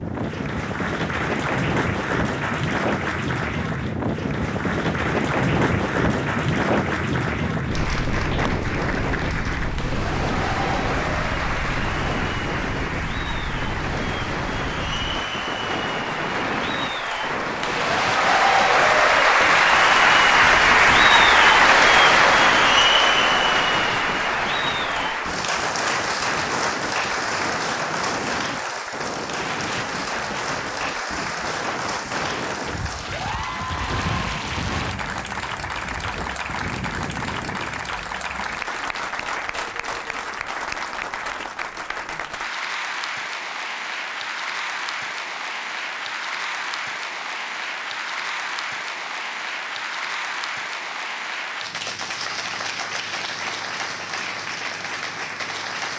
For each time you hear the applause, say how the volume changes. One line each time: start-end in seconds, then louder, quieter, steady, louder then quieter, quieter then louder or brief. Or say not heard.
0.0-55.9 louder then quieter.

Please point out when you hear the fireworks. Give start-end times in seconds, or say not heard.
not heard.